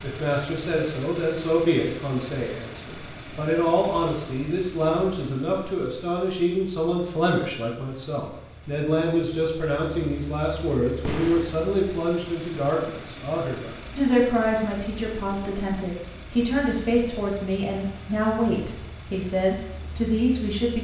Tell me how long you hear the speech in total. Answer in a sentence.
The speech can be heard for 21 seconds in total.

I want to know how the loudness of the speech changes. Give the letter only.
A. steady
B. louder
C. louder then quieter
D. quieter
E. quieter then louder
A.